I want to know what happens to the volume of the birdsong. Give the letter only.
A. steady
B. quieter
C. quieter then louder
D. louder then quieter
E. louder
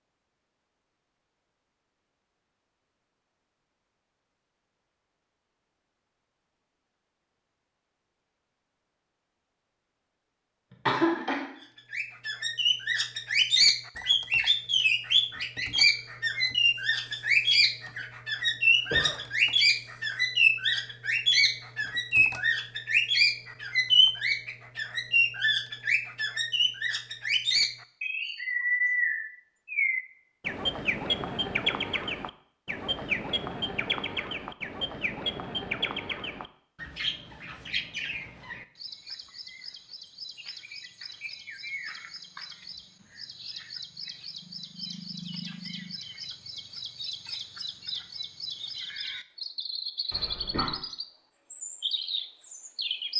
B.